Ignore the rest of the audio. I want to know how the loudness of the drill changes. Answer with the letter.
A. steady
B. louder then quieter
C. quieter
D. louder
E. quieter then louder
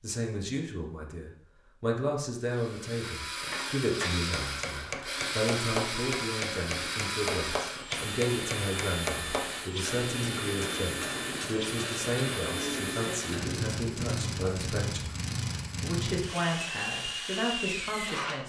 A.